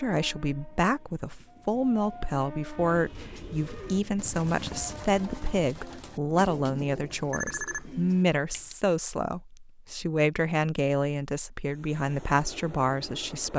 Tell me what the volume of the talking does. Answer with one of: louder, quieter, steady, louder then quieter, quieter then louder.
steady.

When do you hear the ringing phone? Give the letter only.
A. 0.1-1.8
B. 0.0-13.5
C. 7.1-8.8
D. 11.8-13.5
C.